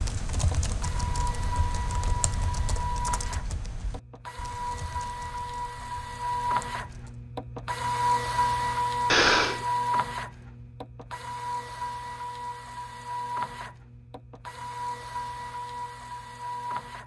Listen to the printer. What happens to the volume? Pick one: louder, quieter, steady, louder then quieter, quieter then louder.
louder then quieter.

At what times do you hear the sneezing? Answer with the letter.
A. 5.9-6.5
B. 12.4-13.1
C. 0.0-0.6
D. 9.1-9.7
D.